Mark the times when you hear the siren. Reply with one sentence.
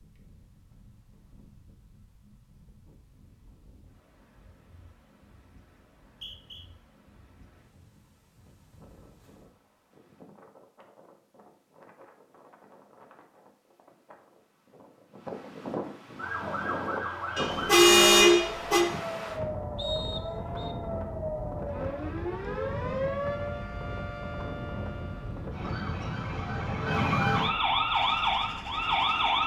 You can hear the siren from 16.1 to 29.4 s.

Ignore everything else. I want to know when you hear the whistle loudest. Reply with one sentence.
The loudest moment of the whistle is at 20 seconds.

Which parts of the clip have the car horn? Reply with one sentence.
You can hear the car horn from 17.4 to 18.9 s.